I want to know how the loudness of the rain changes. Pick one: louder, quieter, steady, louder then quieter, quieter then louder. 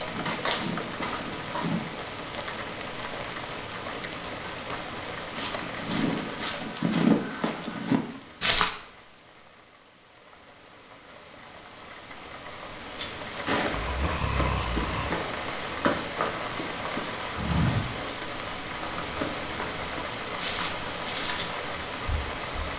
quieter then louder.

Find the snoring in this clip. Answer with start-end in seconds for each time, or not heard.
13.7-15.2.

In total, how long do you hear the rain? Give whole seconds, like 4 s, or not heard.
23 s.